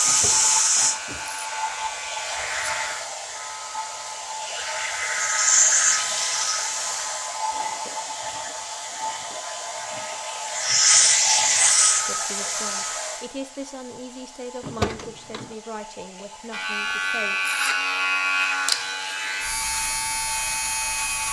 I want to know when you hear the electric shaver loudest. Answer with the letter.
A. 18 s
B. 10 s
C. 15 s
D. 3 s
A.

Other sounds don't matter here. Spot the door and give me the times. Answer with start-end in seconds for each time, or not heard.
0.1-0.9, 14.6-15.6.